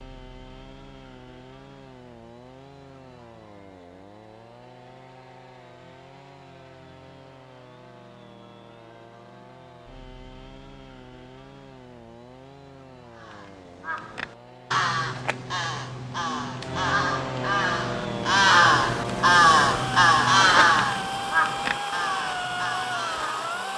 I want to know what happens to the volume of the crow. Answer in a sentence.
The loudness of the crow goes up, then down.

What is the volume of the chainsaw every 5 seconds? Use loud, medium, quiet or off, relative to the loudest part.
quiet, quiet, quiet, loud, loud.